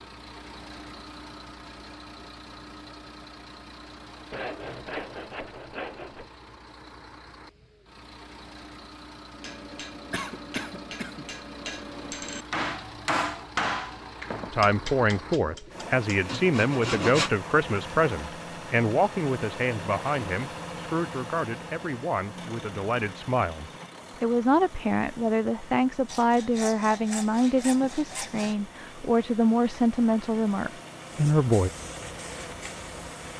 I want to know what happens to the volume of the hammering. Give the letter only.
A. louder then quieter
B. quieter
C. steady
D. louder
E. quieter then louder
A.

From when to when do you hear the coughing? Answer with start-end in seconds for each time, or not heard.
10.1-11.3.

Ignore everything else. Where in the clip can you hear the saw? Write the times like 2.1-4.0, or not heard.
4.3-6.3, 15.4-17.3, 26.1-28.6.